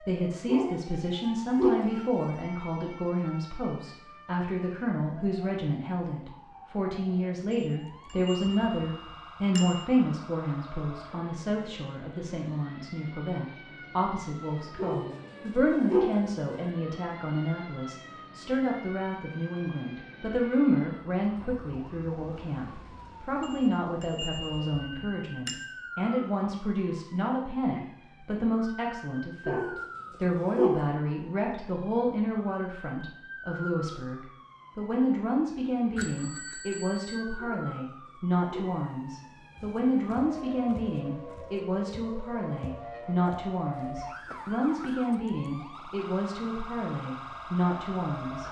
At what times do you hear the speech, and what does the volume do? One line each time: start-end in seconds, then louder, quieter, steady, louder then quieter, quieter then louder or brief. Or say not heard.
0.0-48.4 steady.